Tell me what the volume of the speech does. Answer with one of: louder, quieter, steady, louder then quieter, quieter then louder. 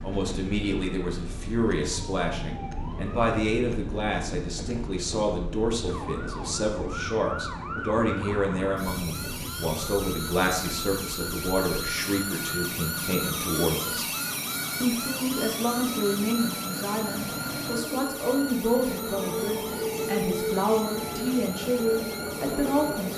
steady.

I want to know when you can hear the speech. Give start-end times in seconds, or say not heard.
0.0-14.1, 14.8-23.1.